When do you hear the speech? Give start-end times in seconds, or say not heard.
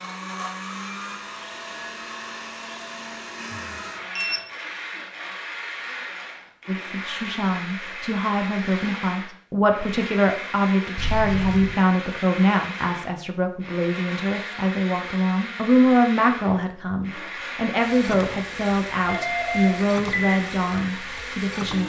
6.7-21.8.